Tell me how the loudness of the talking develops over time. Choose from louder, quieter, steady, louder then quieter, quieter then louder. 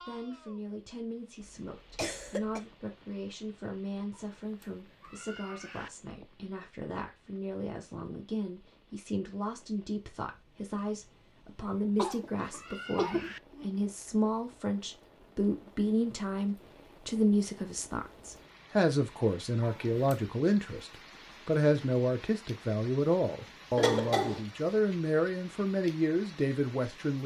louder.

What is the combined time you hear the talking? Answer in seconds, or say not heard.
27 s.